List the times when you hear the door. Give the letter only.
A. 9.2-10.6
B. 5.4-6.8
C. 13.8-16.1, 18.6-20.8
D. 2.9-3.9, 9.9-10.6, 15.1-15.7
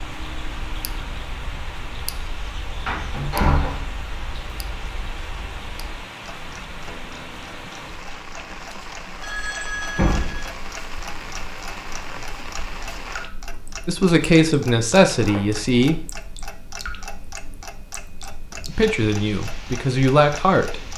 D.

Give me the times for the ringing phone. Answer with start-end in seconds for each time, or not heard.
9.2-10.6.